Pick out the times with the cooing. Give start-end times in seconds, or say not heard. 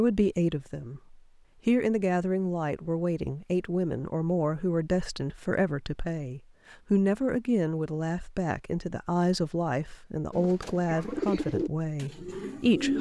10.3-12.9.